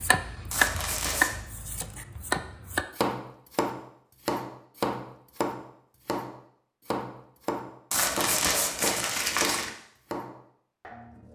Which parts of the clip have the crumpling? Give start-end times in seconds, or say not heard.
0.5-1.4, 7.9-9.7.